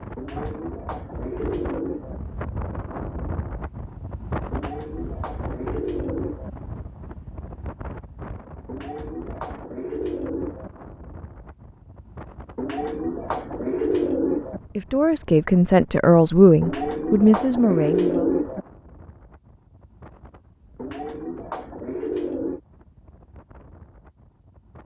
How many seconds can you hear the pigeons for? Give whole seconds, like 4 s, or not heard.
12 s.